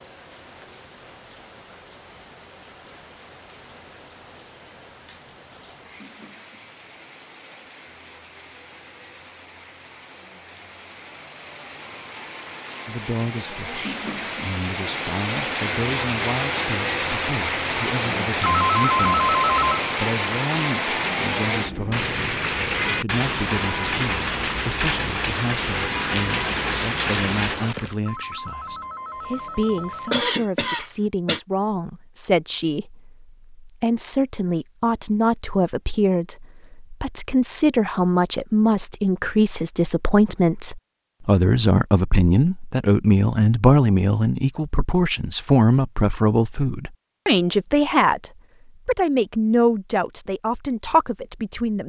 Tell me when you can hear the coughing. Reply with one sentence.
You can hear the coughing from 29.8 to 31.4 s.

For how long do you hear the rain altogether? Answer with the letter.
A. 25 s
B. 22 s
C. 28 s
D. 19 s
C.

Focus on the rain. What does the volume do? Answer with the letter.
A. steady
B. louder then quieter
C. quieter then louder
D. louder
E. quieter
D.